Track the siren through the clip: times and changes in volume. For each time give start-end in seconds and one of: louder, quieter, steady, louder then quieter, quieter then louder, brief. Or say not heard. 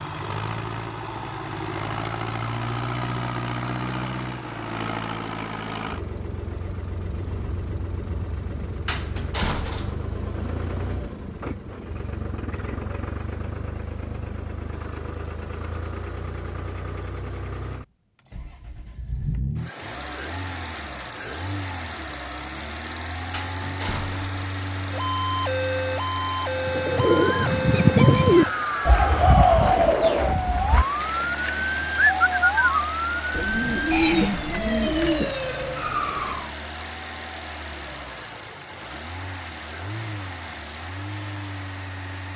24.8-36.5 steady.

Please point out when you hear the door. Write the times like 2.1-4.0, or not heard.
8.8-9.9, 23.3-24.4.